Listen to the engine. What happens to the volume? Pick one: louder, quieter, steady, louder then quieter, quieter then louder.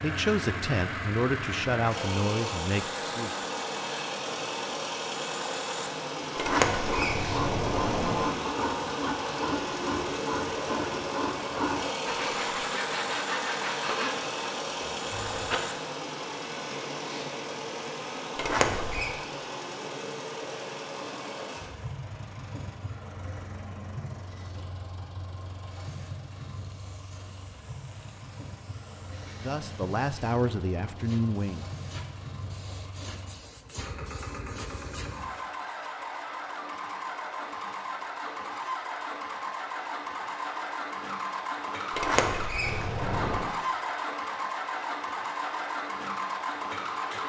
quieter then louder.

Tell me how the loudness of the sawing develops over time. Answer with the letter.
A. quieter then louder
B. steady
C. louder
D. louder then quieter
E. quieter
B.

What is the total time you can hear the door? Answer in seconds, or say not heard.
4 s.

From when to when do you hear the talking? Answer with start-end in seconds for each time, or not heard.
0.0-3.4, 29.4-31.7.